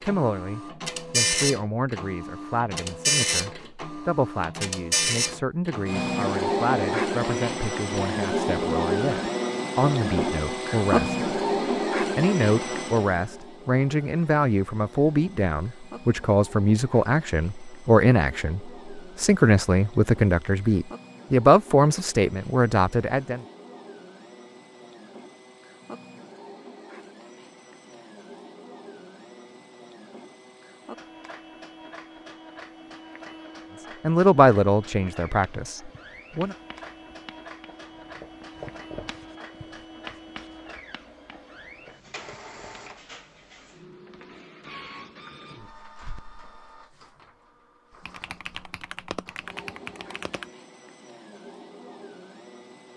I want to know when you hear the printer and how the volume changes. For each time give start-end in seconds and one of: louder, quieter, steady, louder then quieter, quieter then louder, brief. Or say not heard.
0.0-52.9 quieter.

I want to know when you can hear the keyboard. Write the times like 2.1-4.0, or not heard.
48.0-50.5.